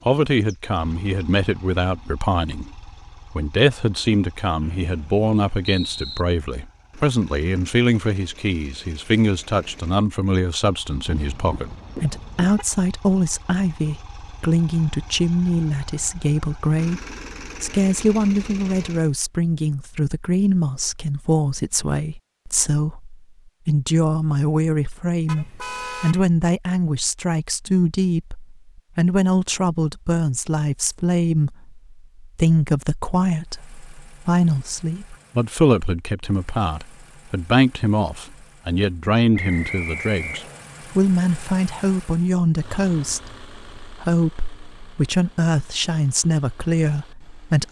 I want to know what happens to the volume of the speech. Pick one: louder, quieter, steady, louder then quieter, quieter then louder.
steady.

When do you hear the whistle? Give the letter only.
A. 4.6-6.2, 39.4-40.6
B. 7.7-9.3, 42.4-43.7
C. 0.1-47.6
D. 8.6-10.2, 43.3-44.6
A.